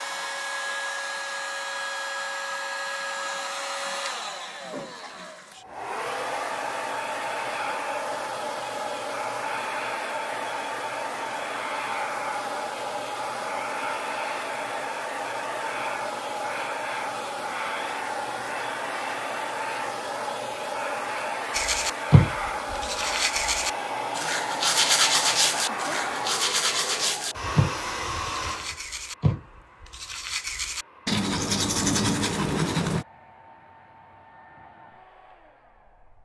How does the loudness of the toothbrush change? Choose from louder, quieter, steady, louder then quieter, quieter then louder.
quieter then louder.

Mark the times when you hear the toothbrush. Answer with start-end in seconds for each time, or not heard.
21.5-33.0.